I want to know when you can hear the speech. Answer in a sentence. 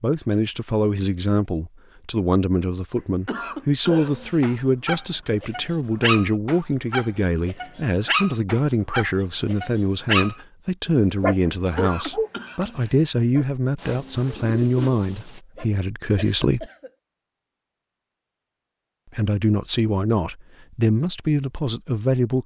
The speech can be heard from 0.0 to 16.7 s and from 19.1 to 22.4 s.